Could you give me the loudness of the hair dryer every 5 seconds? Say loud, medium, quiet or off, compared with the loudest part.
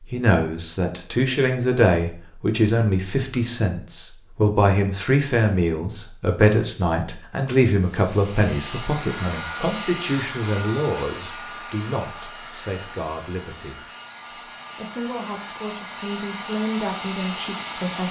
off, loud, loud, loud.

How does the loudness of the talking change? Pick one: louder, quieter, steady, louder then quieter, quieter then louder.
quieter.